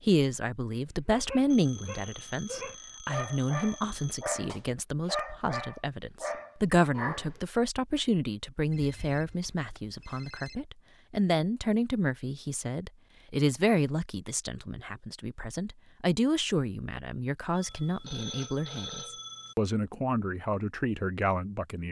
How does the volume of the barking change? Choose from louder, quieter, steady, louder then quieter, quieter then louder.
louder.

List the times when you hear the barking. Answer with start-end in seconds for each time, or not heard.
0.9-7.4.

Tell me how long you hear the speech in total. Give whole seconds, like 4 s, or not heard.
22 s.